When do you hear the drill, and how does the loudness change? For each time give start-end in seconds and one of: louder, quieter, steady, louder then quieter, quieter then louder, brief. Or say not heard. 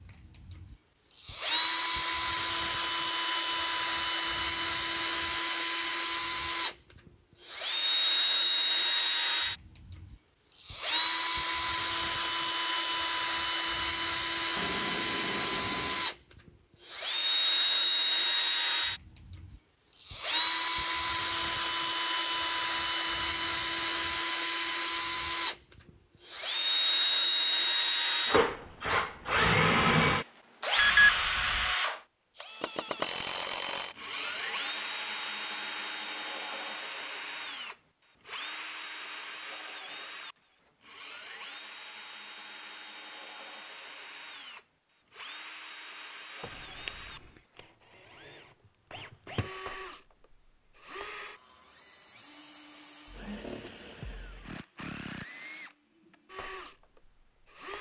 0.1-57.7 quieter.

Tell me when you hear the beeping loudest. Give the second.
31 s.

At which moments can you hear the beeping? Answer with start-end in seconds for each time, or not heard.
14.6-16.1, 30.8-31.7, 46.4-47.3.